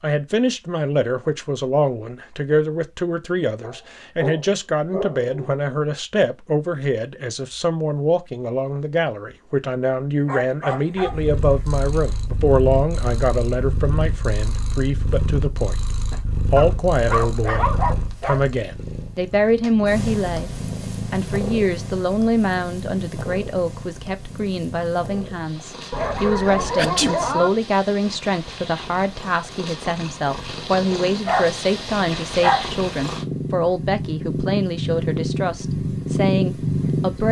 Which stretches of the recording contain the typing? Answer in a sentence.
You can't hear the typing here.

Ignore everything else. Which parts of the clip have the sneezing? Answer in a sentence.
The sneezing can be heard from 26.8 to 27.2 s.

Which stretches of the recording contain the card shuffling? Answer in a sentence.
The card shuffling can't be heard in this clip.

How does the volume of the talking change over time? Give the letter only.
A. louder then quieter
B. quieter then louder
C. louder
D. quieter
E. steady
E.